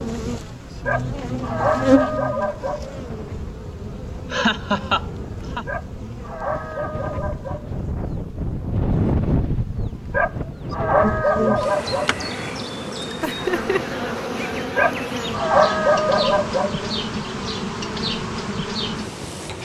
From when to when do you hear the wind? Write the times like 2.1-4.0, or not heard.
0.0-19.6.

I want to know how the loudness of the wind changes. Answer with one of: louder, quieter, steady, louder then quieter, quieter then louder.
louder then quieter.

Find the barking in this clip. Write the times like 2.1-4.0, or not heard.
0.8-3.0, 5.7-7.8, 10.1-12.2, 14.8-16.9.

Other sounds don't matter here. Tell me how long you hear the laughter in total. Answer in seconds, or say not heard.
2 s.